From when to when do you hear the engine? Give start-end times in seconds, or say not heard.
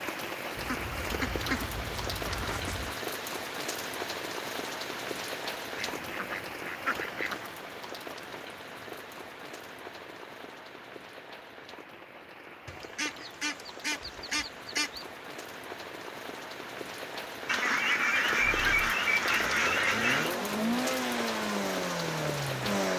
18.4-22.9.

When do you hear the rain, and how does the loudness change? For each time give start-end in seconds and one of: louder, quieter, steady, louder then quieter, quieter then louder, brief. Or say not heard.
0.0-22.9 quieter then louder.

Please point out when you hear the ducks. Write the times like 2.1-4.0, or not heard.
0.6-3.0, 5.8-7.5, 12.7-15.1, 17.4-20.4.